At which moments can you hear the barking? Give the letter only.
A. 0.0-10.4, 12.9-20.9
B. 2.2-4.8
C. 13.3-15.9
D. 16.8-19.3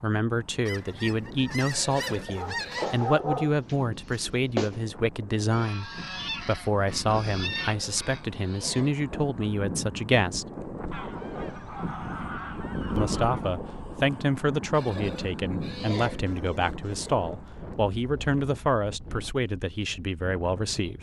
B.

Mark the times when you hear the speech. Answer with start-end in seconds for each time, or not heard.
0.0-10.4, 12.9-20.9.